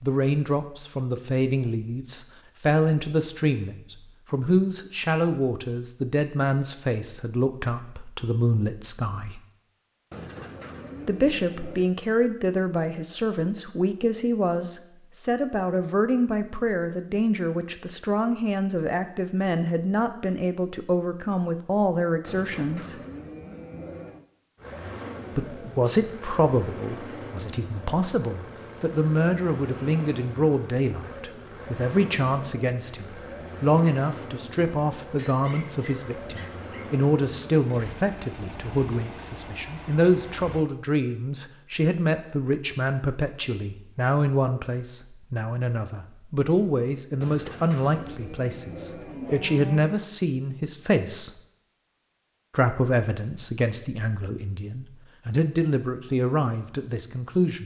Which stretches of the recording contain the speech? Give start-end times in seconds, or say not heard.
0.0-9.4, 11.1-23.0, 25.4-51.3, 52.5-57.6.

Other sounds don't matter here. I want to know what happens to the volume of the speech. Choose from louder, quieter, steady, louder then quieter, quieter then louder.
steady.